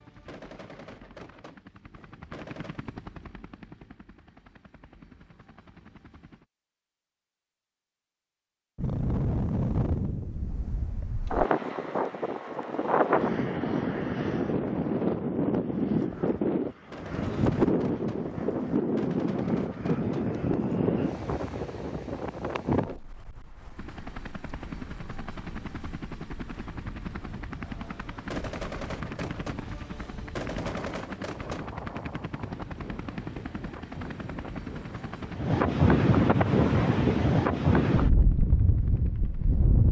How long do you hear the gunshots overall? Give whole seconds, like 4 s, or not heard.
9 s.